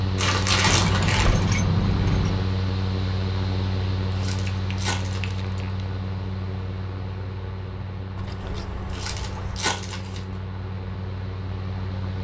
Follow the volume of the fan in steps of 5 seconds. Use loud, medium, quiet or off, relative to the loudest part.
loud, medium, medium.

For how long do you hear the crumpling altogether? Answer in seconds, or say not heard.
4 s.